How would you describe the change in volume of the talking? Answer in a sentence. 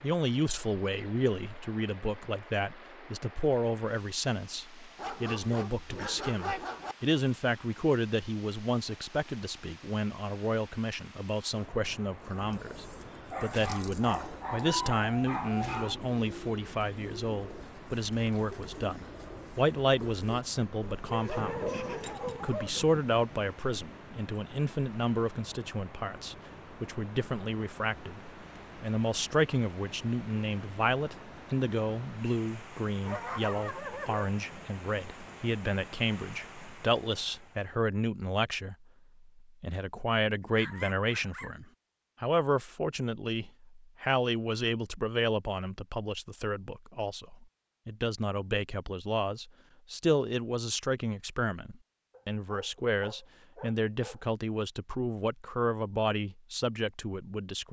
The volume of the talking stays about the same.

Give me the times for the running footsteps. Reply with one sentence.
The running footsteps can't be heard in this clip.